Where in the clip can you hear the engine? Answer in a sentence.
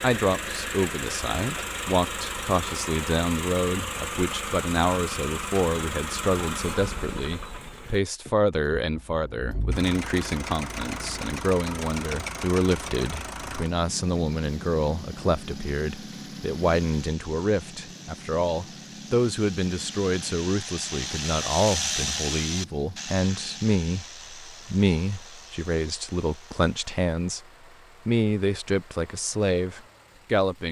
You can hear the engine from 0.0 to 30.6 s.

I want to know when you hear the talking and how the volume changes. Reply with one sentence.
You can hear the talking from 0.0 to 27.4 s, at a steady volume; and briefly from 28.1 to 30.6 s.